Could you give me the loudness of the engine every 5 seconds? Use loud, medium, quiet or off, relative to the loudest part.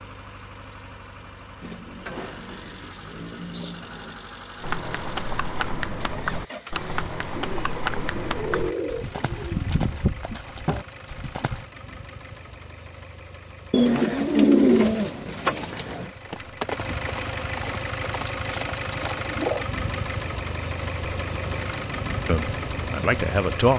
medium, medium, medium, loud, loud.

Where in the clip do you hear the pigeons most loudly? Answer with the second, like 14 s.
15 s.